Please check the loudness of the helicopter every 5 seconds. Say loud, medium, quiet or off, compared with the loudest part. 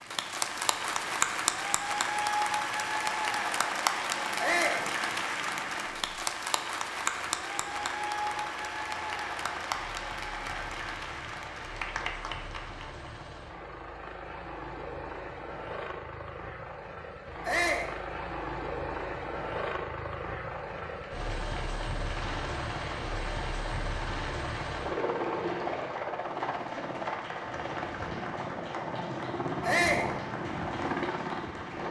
quiet, quiet, medium, loud, loud, loud, loud.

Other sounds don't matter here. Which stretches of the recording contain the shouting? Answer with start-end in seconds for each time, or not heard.
4.3-4.8, 17.4-17.9, 29.6-30.1.